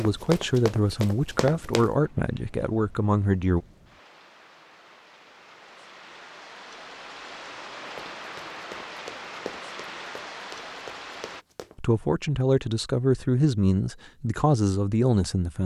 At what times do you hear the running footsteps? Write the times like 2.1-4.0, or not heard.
0.0-1.9, 7.8-11.8.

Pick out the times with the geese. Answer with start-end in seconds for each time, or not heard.
not heard.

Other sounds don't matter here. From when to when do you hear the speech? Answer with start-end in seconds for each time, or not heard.
0.0-3.6, 11.8-15.6.